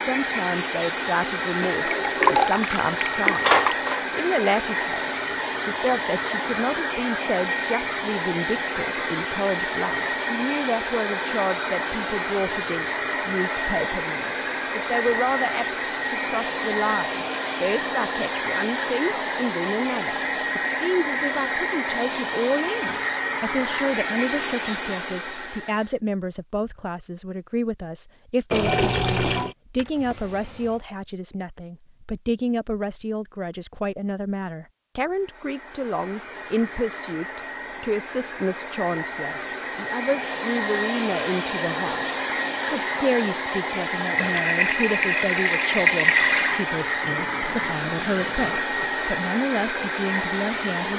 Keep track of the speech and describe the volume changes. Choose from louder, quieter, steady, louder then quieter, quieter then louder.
steady.